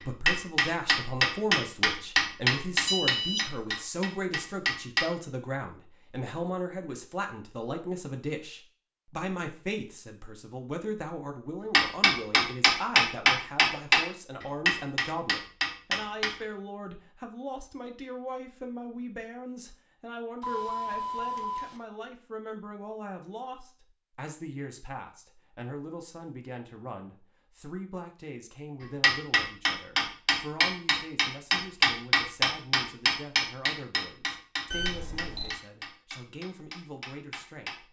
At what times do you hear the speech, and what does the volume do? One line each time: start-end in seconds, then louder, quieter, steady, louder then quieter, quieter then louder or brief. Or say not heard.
0.0-37.8 quieter.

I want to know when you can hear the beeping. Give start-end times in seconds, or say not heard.
2.9-3.5, 20.4-21.8, 34.7-35.6.